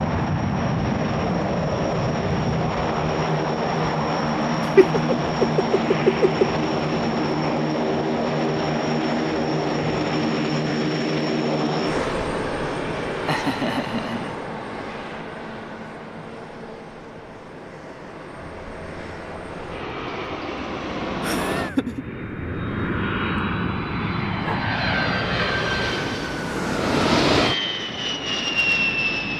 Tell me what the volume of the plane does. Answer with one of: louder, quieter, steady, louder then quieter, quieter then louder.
quieter then louder.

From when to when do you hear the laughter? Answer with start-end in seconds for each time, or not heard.
4.8-6.5, 13.1-14.3, 21.2-22.1.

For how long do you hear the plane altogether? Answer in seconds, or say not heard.
29 s.